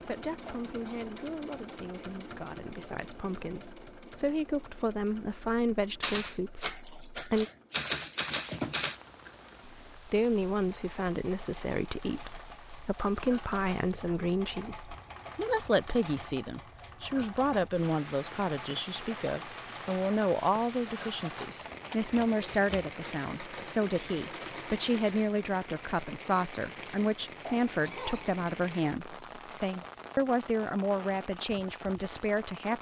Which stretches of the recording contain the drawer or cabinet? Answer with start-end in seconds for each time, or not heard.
not heard.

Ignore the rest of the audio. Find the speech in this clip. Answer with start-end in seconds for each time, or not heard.
0.1-7.5, 9.9-32.7.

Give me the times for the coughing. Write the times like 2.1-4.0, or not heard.
0.5-1.1, 27.4-28.3.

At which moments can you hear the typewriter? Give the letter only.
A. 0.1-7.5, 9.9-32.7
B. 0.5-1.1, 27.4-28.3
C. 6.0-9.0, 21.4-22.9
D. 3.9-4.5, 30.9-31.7
C.